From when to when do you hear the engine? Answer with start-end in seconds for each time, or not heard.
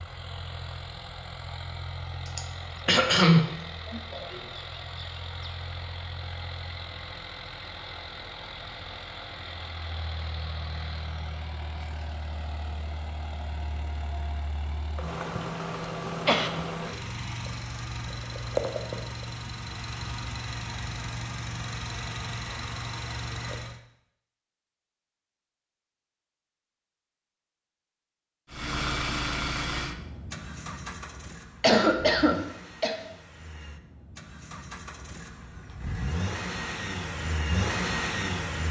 0.0-23.8, 28.5-38.6.